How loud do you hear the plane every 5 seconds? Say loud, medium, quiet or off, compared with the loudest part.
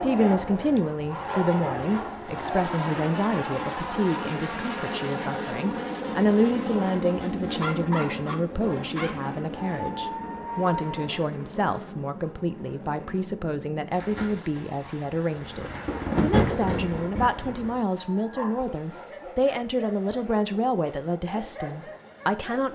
loud, loud, medium, quiet, quiet.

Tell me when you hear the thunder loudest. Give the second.
16 s.